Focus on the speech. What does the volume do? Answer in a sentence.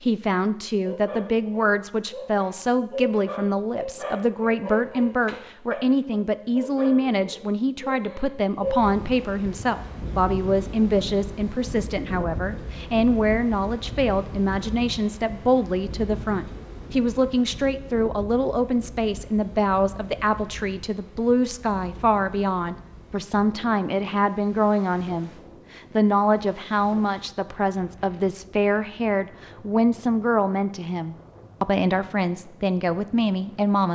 The loudness of the speech stays about the same.